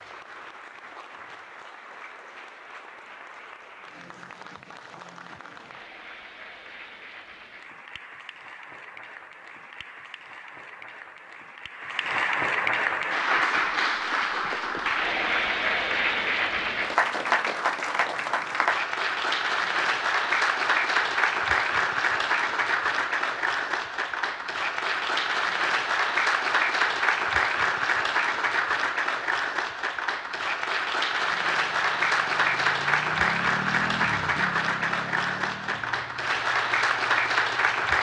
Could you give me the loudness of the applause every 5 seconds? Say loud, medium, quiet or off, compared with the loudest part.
quiet, quiet, loud, loud, loud, loud, loud, loud.